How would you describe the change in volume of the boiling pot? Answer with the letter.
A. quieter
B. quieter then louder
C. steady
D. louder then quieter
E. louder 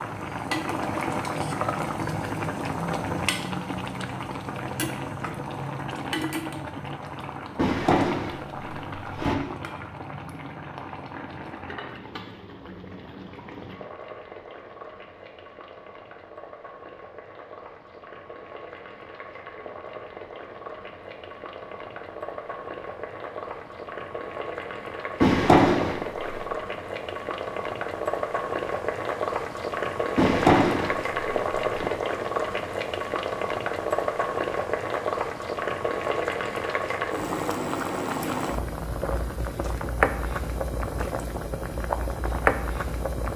B.